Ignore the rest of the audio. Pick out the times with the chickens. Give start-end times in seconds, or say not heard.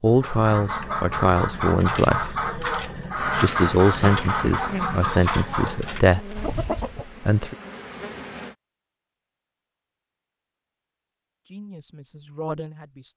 0.1-7.2.